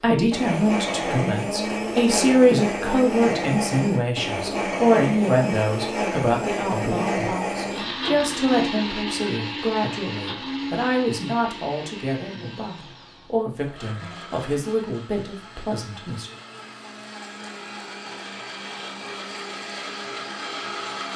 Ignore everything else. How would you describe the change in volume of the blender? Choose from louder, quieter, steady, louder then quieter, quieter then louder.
quieter then louder.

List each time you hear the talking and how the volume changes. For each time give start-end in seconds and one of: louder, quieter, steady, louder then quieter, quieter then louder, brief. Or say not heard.
0.0-16.3 quieter.